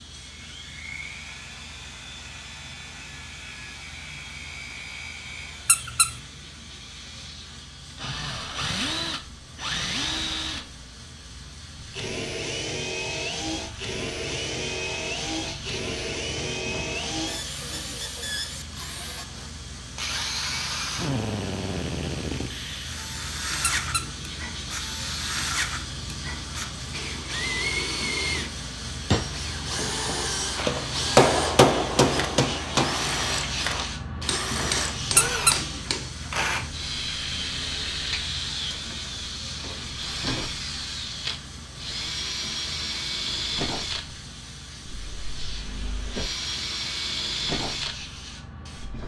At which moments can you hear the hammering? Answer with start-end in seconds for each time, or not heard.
29.1-36.1.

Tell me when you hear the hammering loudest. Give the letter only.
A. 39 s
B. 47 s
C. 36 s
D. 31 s
D.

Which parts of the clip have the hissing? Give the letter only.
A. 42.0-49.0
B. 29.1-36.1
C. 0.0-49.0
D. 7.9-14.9
C.